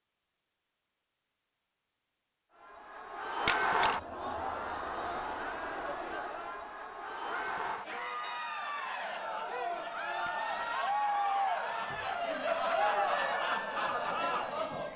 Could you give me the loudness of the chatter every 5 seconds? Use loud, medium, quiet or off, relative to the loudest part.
loud, medium, loud.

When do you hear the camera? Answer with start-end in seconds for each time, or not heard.
3.5-4.0, 10.2-10.8.